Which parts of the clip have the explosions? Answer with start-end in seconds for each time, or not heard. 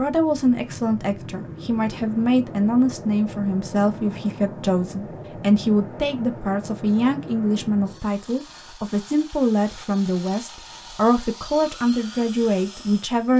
not heard.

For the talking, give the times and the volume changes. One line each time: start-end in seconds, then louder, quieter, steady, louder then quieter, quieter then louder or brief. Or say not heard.
0.0-13.3 steady.